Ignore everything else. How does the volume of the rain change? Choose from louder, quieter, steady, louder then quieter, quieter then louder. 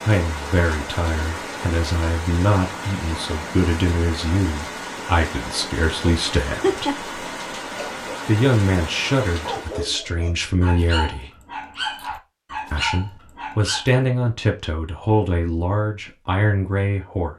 steady.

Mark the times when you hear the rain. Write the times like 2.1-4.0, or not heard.
0.0-9.9.